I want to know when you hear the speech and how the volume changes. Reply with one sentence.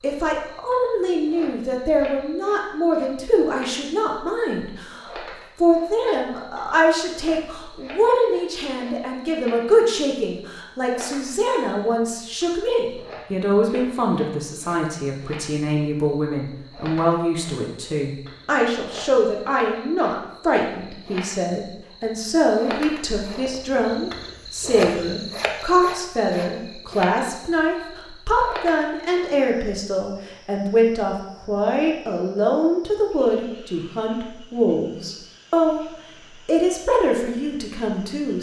You can hear the speech from 0.0 to 35.9 s, at a steady volume; and briefly from 36.5 to 38.3 s.